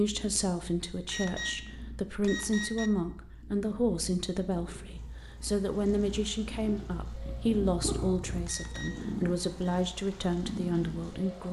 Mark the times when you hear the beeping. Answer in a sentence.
The beeping can be heard from 0.9 to 2.9 s and from 8.3 to 9.8 s.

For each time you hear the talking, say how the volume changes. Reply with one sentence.
The talking can be heard from 0.0 to 11.4 s, at a steady volume.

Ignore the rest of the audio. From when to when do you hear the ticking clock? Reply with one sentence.
You can't hear the ticking clock here.